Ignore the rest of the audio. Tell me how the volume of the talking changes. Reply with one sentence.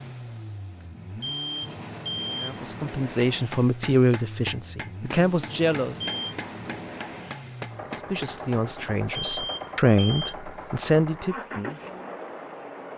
The volume of the talking stays about the same.